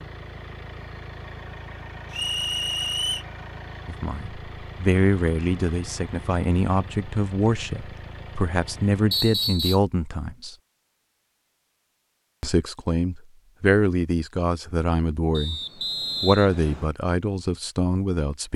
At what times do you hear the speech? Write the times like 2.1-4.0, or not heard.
3.9-10.6, 12.4-15.6, 16.2-18.5.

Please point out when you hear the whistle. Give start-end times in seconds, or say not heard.
2.1-3.2, 9.1-9.8, 15.3-16.9.